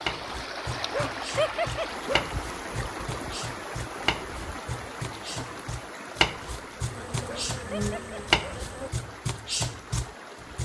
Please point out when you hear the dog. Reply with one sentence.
You can hear the dog from 0.9 to 2.4 s and from 7.2 to 8.7 s.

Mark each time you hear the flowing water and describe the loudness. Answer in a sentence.
The flowing water can be heard from 0.0 to 10.6 s, getting quieter.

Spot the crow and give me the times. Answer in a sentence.
The crow can't be heard in this clip.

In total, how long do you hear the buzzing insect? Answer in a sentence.
You can hear the buzzing insect for 2 seconds altogether.